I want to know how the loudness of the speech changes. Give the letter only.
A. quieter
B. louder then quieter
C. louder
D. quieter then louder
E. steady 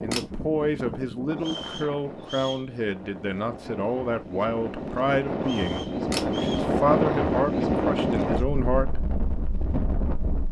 E.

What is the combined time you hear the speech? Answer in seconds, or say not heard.
9 s.